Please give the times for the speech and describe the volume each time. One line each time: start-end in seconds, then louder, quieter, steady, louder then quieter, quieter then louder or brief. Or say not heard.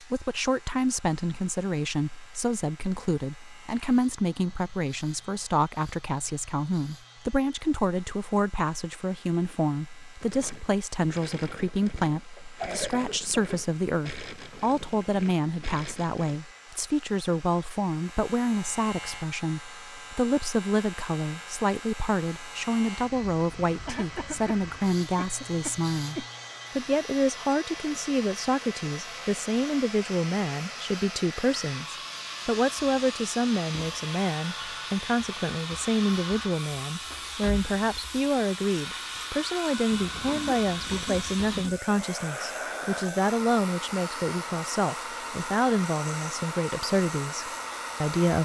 0.1-48.4 steady.